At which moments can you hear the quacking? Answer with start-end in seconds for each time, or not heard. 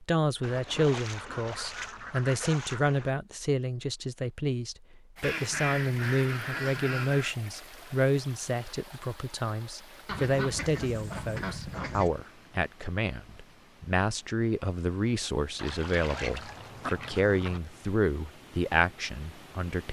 0.4-3.1, 5.2-7.3, 10.1-12.1, 15.6-17.6.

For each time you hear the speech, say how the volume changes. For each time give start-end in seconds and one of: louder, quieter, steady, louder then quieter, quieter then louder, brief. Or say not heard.
0.0-19.8 steady.